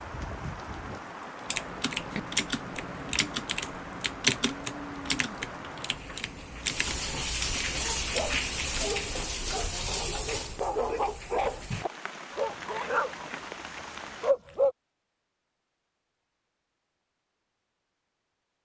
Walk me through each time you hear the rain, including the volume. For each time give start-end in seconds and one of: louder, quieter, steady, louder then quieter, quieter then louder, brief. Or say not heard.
0.0-14.3 louder then quieter.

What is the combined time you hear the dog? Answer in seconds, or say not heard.
7 s.